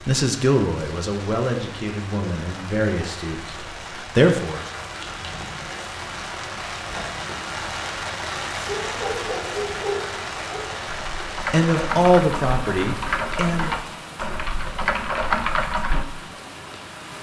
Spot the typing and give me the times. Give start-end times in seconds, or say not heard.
10.8-16.1.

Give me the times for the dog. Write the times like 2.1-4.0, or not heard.
8.7-10.8.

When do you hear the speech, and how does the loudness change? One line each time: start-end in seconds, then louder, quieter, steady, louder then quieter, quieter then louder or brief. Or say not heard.
0.1-4.7 quieter then louder
11.4-13.8 brief.